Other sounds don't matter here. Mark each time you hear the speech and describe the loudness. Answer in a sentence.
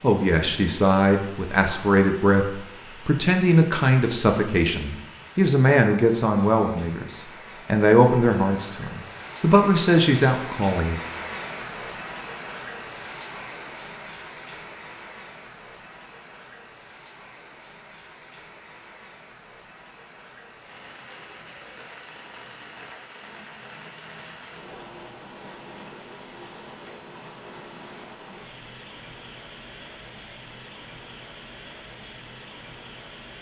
You can hear the speech from 0.0 to 11.0 s, at a steady volume.